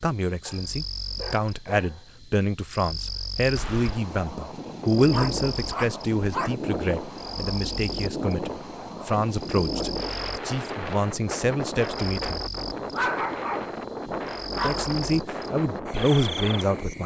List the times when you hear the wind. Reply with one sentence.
You can hear the wind from 3.5 to 17.0 s.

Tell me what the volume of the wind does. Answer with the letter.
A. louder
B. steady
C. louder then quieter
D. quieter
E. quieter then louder
B.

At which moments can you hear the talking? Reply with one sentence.
You can hear the talking from 0.0 to 12.4 s and from 14.6 to 17.0 s.